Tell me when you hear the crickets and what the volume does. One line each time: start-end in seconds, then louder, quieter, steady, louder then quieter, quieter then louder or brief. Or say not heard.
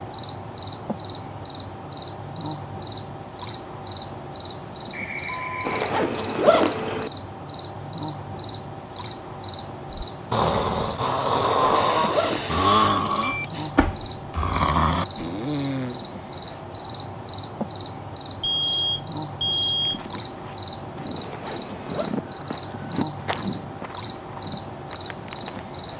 0.0-25.9 steady.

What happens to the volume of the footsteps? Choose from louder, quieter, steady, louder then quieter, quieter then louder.
louder then quieter.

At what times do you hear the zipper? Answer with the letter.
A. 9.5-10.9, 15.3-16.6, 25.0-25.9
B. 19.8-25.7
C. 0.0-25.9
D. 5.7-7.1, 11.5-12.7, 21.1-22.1
D.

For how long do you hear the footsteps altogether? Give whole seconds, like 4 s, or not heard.
6 s.